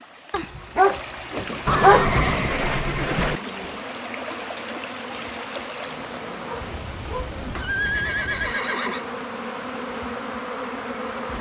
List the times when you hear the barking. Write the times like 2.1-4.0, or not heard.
0.3-2.0, 6.5-7.3.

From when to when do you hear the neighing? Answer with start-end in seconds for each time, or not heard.
1.6-3.4, 7.6-9.1.